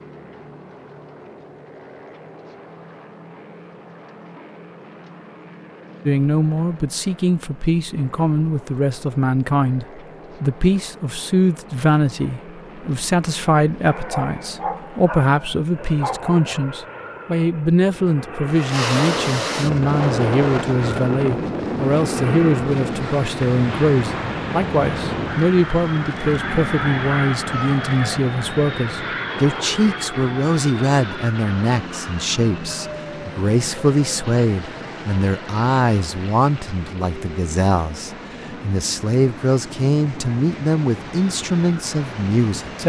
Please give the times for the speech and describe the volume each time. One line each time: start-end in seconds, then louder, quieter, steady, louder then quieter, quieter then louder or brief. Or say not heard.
6.0-42.8 steady.